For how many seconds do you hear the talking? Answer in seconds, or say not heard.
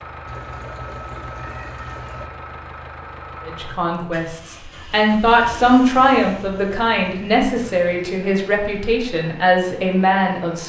7 s.